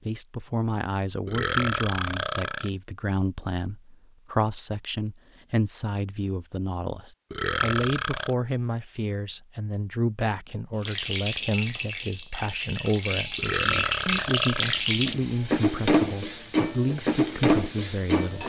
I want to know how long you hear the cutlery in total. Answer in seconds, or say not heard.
not heard.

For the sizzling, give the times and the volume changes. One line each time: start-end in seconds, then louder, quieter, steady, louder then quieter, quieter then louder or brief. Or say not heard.
10.8-18.4 louder.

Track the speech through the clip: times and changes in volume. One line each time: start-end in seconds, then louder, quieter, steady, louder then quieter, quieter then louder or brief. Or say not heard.
0.1-18.4 steady.